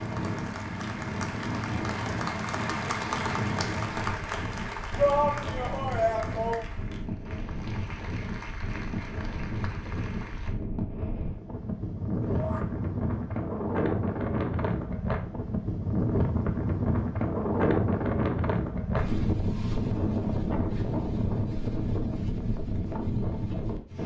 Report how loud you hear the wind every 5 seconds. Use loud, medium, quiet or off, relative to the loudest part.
medium, medium, loud, loud, loud.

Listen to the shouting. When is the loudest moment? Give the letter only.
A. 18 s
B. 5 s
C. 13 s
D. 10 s
B.